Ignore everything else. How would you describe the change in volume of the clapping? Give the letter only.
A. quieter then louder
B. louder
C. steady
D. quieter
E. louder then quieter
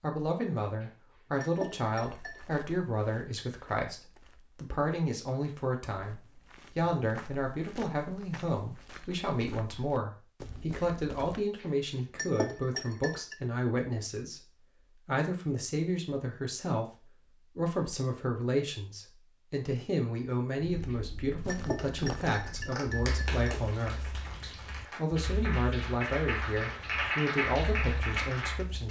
A.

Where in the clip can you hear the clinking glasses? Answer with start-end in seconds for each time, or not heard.
0.8-2.5, 11.6-13.3, 20.9-23.6.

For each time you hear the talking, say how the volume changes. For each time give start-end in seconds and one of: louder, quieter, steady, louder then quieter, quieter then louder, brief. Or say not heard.
0.0-28.8 steady.